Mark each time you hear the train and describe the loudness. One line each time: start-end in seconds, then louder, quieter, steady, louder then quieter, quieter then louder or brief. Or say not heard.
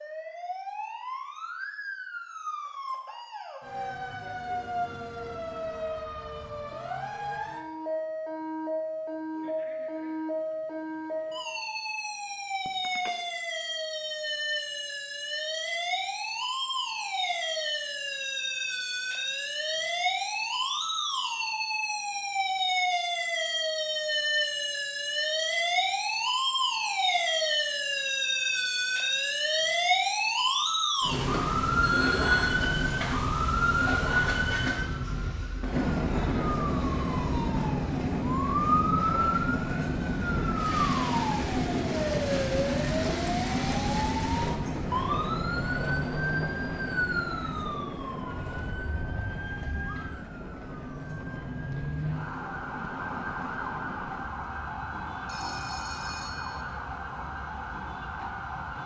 31.1-58.8 quieter.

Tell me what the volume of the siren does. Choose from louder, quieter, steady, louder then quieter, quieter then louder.
louder then quieter.